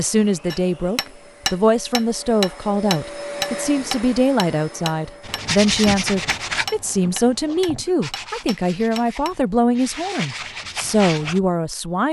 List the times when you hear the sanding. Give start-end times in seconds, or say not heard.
5.2-11.4.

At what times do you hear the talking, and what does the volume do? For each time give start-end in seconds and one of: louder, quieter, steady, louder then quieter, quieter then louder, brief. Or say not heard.
0.0-12.0 steady.